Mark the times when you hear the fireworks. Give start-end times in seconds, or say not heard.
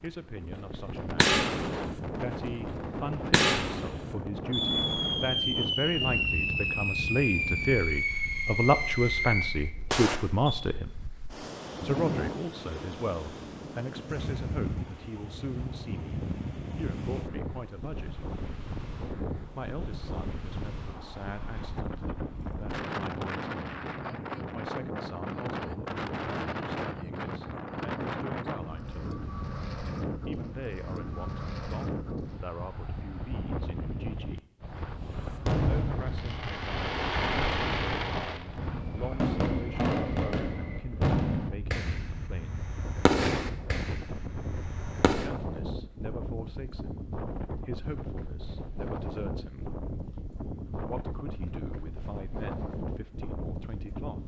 0.6-10.7, 35.2-45.3.